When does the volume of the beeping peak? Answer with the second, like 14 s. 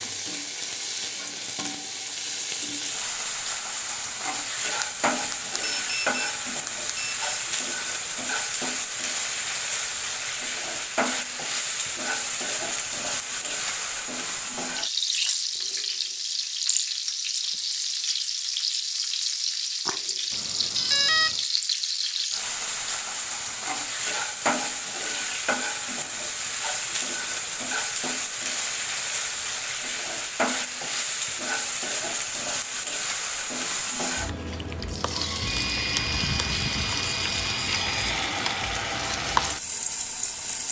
21 s.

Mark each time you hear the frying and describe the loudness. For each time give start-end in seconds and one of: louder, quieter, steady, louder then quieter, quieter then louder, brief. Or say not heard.
0.0-40.6 steady.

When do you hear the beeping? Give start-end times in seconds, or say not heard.
4.8-7.3, 20.3-21.4, 35.5-38.1.